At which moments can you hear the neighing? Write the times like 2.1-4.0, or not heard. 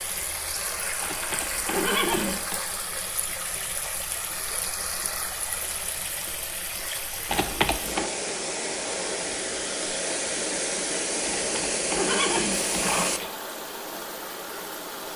1.0-2.6, 7.2-8.1, 11.2-13.3.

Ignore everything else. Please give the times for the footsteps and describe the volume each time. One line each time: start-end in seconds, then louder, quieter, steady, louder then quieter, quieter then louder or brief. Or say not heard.
not heard.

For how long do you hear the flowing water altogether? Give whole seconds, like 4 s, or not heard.
15 s.